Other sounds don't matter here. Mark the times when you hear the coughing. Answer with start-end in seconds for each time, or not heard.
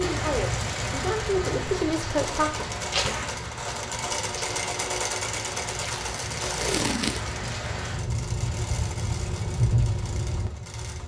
not heard.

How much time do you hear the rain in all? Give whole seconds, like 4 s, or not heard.
11 s.